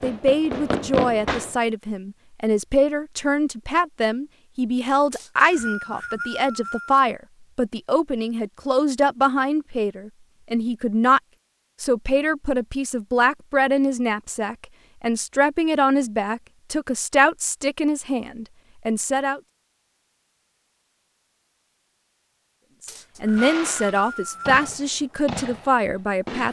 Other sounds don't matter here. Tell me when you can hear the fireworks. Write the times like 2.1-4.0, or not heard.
0.0-1.6, 23.2-26.4.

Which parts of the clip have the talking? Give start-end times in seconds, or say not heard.
0.0-11.2, 11.8-19.4, 23.2-26.4.